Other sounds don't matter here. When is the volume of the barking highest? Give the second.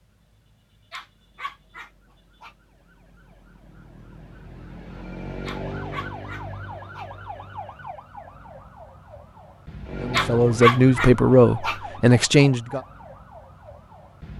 11 s.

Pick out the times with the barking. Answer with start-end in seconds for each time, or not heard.
0.9-2.5, 5.5-7.0, 10.1-11.8.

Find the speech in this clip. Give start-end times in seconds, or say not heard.
10.0-12.8.